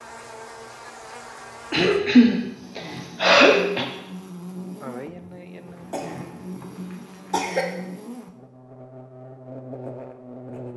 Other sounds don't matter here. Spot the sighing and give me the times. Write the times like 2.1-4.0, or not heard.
4.8-6.3.